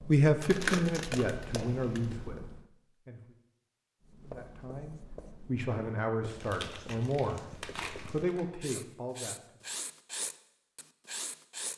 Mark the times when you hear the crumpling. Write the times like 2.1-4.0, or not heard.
0.4-2.1, 6.2-8.7.